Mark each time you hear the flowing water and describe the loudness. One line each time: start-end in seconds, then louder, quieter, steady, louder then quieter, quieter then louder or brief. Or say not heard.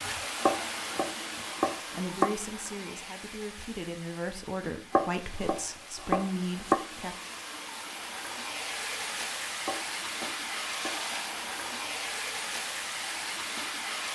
0.0-14.0 quieter then louder.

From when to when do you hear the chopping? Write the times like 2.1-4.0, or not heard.
0.4-2.3, 4.9-6.8, 9.7-11.0.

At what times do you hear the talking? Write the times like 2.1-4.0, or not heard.
1.9-7.2.